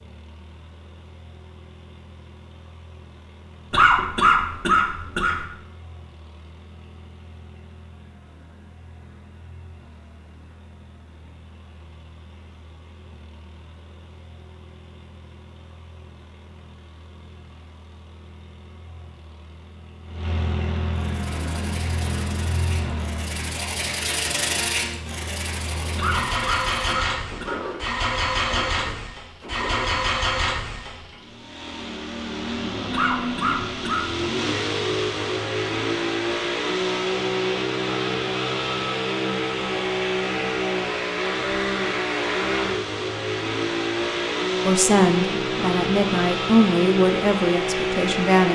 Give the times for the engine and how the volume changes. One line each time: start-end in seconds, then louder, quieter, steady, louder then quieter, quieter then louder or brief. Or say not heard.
0.0-48.4 louder.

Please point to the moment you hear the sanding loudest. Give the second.
25 s.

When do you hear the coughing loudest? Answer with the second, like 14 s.
4 s.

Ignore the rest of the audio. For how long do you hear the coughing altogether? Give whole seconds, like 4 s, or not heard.
5 s.